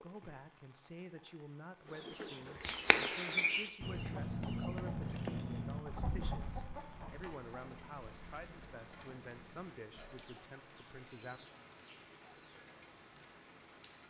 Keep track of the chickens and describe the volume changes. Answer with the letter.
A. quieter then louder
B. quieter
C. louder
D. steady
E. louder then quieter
B.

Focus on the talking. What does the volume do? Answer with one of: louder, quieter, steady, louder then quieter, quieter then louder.
steady.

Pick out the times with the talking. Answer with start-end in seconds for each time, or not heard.
0.0-11.4.